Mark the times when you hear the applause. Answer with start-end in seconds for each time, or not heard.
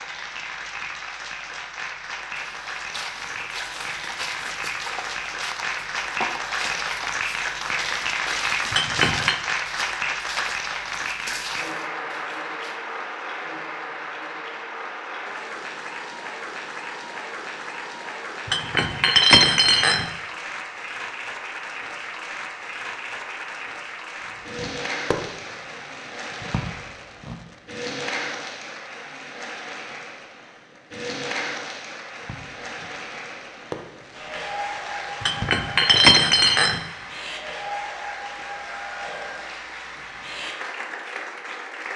0.0-41.9.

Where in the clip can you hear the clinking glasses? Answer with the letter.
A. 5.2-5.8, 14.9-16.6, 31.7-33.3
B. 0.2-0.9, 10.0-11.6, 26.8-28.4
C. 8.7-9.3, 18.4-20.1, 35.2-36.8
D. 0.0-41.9
C.